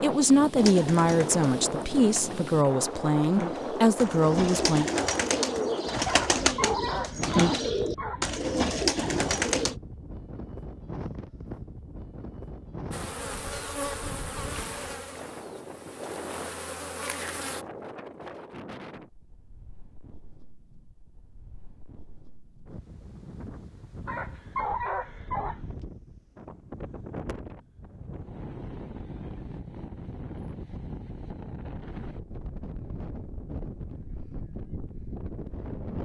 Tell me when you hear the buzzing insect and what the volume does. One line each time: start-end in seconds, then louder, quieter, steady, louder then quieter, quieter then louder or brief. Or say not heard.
12.9-17.6 quieter then louder.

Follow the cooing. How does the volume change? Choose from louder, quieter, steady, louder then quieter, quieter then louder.
louder.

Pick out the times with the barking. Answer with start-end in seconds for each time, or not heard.
6.1-8.4, 24.1-25.6.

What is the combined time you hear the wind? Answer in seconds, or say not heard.
36 s.